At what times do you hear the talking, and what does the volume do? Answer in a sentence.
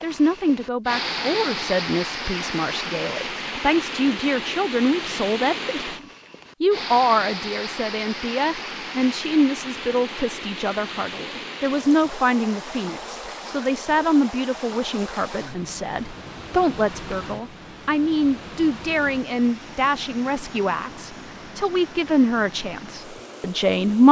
The talking can be heard from 0.0 to 24.0 s, at a steady volume.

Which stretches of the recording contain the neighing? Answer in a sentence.
The neighing can't be heard in this clip.